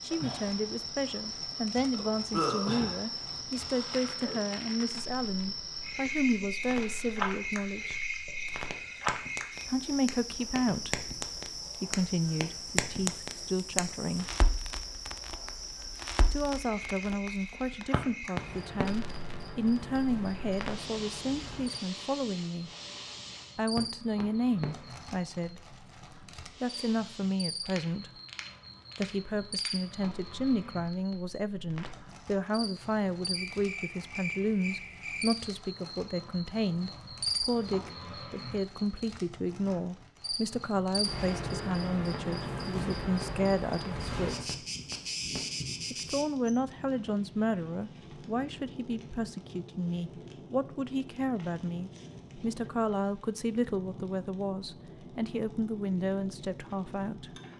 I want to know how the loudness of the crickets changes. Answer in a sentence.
The loudness of the crickets goes down, then up.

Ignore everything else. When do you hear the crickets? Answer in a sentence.
You can hear the crickets from 0.0 to 46.5 s.